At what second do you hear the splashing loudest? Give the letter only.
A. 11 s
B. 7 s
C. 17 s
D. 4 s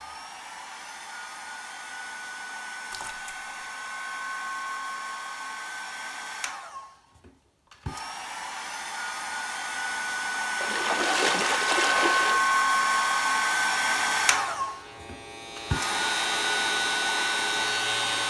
A.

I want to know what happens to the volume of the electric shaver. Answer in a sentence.
The loudness of the electric shaver goes up.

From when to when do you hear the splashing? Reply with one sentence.
You can hear the splashing from 2.9 to 3.4 s and from 10.6 to 12.4 s.